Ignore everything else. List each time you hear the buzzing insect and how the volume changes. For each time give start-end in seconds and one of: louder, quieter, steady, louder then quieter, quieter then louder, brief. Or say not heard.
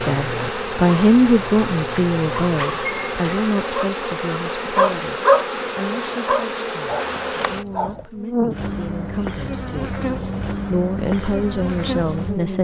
0.0-12.5 steady.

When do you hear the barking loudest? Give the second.
5 s.